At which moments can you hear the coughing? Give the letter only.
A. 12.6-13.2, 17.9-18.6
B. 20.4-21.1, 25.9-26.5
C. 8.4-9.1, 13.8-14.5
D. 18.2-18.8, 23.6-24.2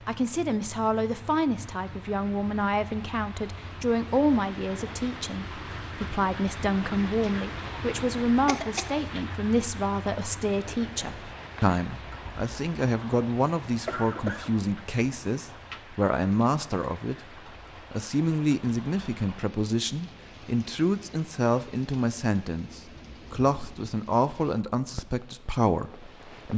C.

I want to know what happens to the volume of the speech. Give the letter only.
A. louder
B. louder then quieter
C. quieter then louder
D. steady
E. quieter
D.